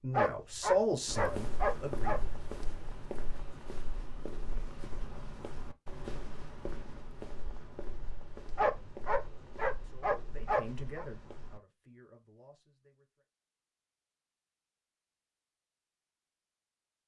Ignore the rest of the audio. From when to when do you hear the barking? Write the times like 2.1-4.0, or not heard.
0.1-2.2, 8.6-11.1.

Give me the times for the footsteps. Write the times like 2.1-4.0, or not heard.
1.1-11.6.